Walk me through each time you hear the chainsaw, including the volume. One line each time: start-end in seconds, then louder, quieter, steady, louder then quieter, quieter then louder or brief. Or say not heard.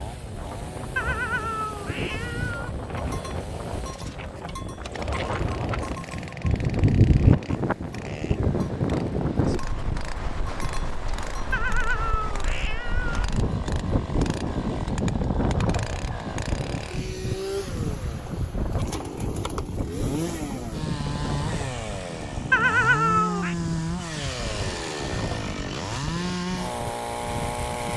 0.0-27.9 louder.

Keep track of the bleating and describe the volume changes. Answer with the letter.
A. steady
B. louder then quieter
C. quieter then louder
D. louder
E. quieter
B.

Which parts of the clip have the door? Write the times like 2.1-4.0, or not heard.
not heard.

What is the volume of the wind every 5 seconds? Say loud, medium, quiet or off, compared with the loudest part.
medium, loud, loud, loud, medium, medium.